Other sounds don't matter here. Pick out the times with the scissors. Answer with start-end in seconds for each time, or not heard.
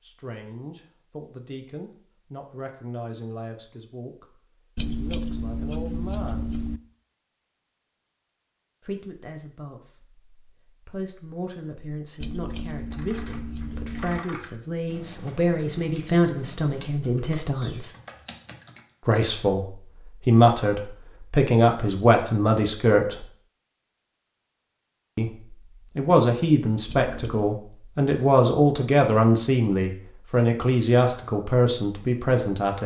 4.8-6.8, 12.2-14.2, 26.9-27.5.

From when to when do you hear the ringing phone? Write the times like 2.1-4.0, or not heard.
not heard.